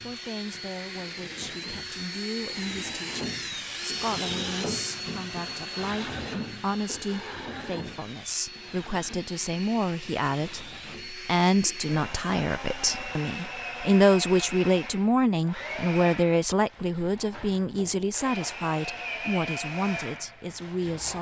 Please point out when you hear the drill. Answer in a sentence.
You can hear the drill from 0.0 to 21.1 s.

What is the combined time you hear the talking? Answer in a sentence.
The talking can be heard for 21 seconds in total.